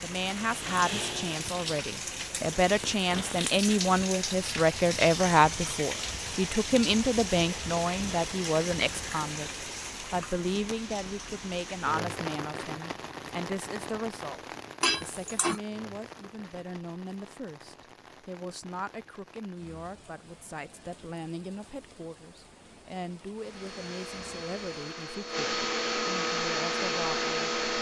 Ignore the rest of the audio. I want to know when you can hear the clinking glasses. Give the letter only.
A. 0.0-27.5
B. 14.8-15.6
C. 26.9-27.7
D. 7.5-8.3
B.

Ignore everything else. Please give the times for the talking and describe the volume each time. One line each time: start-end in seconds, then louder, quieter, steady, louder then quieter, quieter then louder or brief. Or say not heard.
0.0-27.5 quieter.